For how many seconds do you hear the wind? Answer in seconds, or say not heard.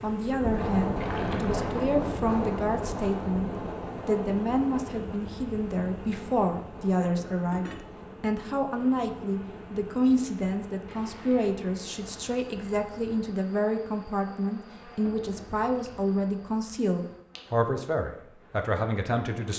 13 s.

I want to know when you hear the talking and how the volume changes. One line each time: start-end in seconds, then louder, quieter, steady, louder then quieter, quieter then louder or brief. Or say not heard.
0.0-19.5 steady.